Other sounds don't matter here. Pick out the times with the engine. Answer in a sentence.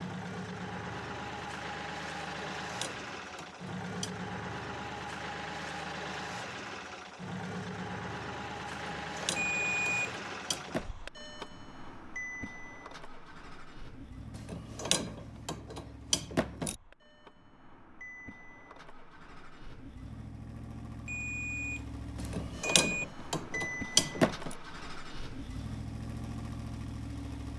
The engine can be heard from 0.0 to 27.5 s.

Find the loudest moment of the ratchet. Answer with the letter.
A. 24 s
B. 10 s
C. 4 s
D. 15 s
A.